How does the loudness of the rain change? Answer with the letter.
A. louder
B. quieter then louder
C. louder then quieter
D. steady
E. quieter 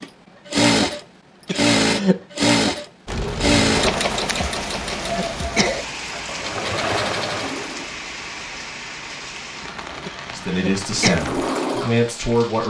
E.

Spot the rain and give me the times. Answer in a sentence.
The rain can be heard from 3.0 to 12.6 s.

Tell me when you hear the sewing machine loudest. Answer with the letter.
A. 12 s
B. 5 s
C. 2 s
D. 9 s
C.